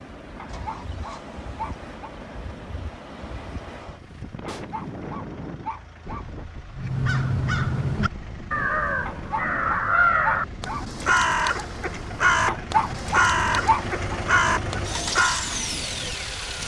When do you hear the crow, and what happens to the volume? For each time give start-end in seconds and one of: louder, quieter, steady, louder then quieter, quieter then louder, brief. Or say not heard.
6.8-15.4 steady.